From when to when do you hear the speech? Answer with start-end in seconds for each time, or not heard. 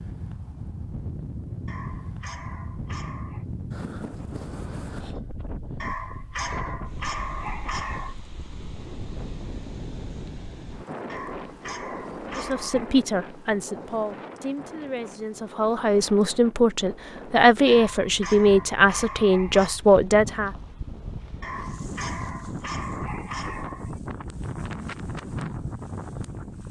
12.3-20.5.